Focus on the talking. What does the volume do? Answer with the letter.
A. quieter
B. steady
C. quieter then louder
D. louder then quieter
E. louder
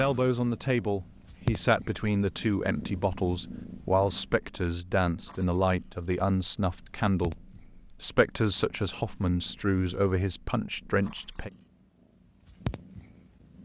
B.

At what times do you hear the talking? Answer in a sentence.
You can hear the talking from 0.0 to 11.5 s.